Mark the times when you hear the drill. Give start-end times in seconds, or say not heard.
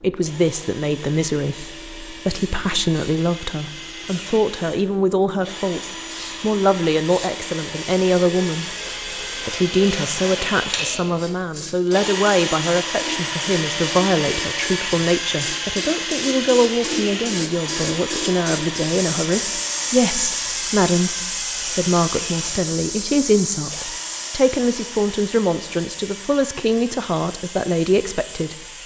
0.1-28.8.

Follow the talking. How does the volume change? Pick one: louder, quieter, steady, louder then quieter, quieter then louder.
steady.